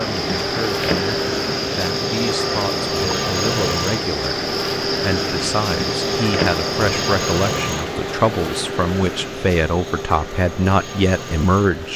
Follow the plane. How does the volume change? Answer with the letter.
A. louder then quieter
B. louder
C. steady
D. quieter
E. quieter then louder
D.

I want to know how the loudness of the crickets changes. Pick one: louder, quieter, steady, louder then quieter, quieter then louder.
steady.